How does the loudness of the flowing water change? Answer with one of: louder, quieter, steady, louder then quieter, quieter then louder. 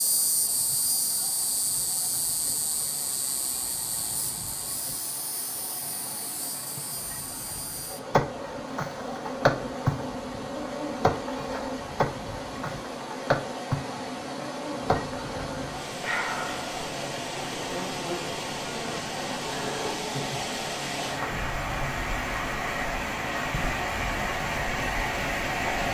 louder.